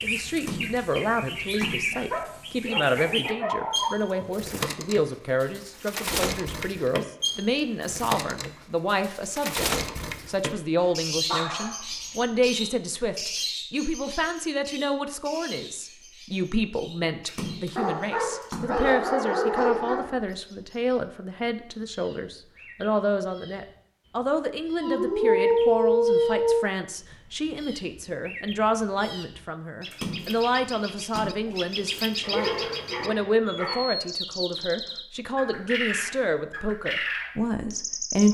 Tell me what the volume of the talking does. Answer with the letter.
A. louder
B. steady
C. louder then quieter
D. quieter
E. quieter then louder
B.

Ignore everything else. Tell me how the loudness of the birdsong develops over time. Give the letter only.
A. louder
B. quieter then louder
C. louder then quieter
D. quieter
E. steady
B.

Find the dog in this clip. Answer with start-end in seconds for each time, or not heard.
2.1-4.2, 10.8-12.7, 17.8-20.1, 24.8-26.7, 32.2-33.9.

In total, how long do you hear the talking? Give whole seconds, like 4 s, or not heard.
38 s.